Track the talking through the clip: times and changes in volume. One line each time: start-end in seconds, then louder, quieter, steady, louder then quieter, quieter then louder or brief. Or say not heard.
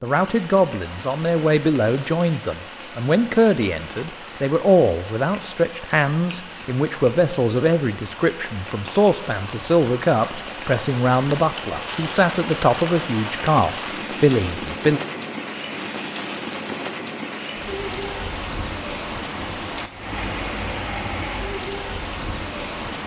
0.0-15.0 steady.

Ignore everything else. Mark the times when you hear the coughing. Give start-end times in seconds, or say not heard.
not heard.